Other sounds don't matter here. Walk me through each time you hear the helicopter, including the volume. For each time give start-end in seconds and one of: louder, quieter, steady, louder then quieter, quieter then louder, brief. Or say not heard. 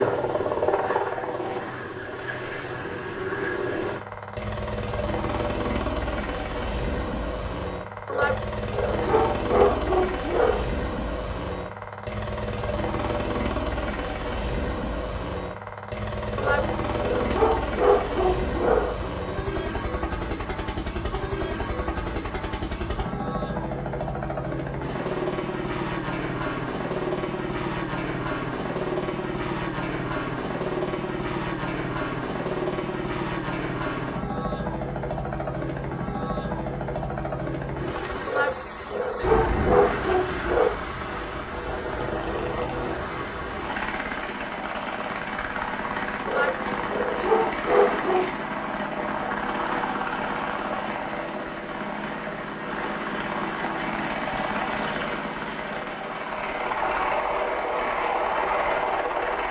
0.0-59.4 steady.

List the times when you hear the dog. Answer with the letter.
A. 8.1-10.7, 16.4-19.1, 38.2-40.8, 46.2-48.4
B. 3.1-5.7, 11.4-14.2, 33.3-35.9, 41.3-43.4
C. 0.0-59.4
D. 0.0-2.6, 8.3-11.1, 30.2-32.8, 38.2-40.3
A.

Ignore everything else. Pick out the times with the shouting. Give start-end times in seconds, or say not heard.
not heard.